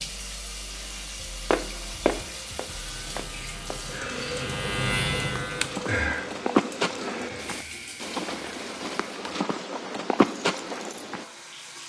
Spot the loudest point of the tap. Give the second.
6 s.